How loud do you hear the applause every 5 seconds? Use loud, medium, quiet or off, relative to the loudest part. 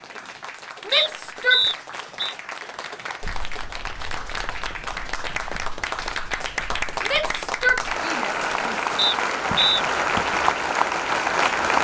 quiet, medium, loud.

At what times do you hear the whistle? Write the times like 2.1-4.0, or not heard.
0.9-2.4, 8.9-9.8.